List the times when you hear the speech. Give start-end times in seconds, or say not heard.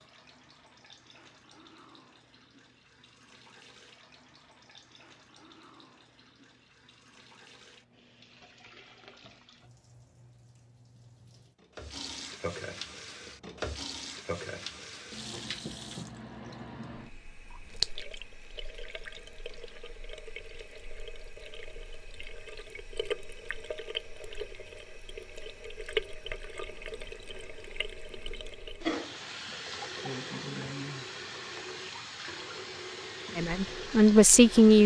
33.4-34.8.